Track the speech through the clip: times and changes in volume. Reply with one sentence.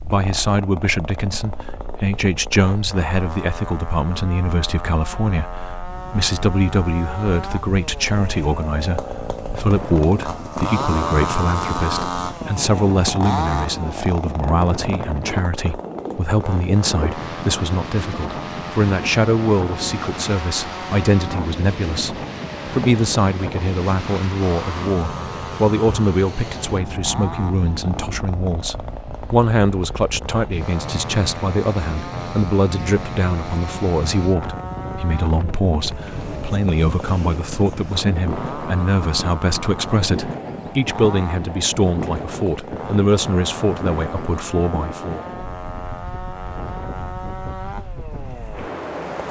The speech can be heard from 0.0 to 45.2 s, at a steady volume.